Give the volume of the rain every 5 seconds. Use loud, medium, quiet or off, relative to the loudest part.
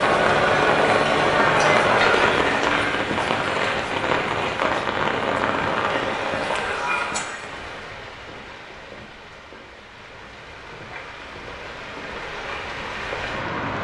loud, medium, medium.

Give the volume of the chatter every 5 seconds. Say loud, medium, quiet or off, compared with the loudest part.
loud, medium, off.